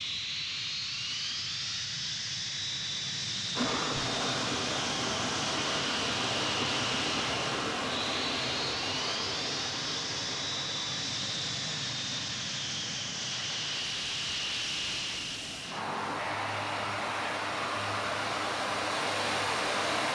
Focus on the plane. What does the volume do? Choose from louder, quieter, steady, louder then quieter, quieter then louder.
steady.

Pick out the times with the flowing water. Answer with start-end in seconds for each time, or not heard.
3.5-20.1.